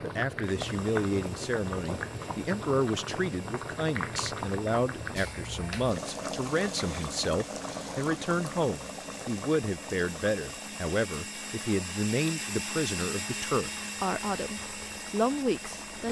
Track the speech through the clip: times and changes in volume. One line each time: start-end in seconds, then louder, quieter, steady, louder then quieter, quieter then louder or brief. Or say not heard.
0.0-16.0 steady.